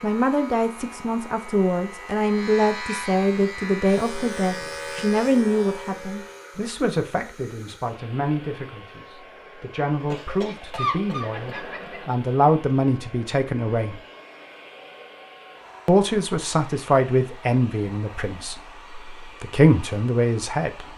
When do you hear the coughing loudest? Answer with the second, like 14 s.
11 s.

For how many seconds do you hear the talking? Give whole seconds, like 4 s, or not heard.
19 s.